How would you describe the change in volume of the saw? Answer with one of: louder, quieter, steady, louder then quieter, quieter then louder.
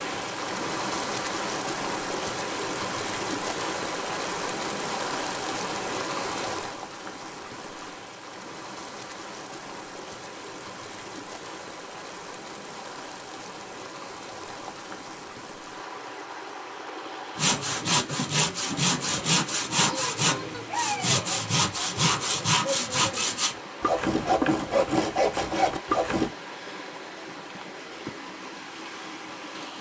steady.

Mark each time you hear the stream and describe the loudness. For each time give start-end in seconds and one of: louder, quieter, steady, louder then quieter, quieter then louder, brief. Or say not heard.
0.0-29.7 quieter.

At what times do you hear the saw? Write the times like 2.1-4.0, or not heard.
17.4-26.3.